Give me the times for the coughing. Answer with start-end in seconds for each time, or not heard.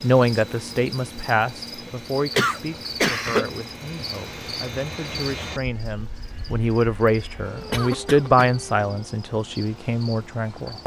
2.4-3.5, 7.7-8.5.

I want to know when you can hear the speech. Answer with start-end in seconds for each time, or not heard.
0.0-10.8.